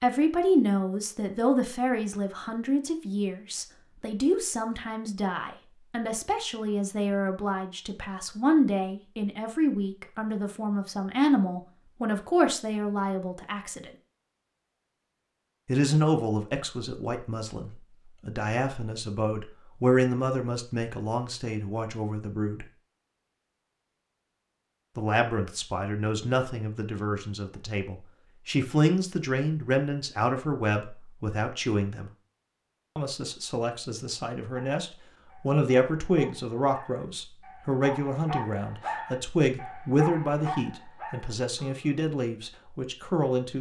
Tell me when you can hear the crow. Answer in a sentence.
The crow can't be heard in this clip.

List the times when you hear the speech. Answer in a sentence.
The speech can be heard from 0.0 to 13.9 s, from 15.7 to 22.7 s, from 24.9 to 32.1 s and from 33.0 to 43.5 s.